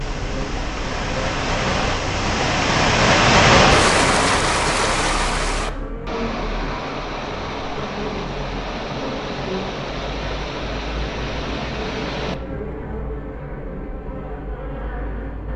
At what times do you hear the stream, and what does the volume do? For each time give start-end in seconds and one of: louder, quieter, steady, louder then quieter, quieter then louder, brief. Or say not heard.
0.0-12.3 louder then quieter.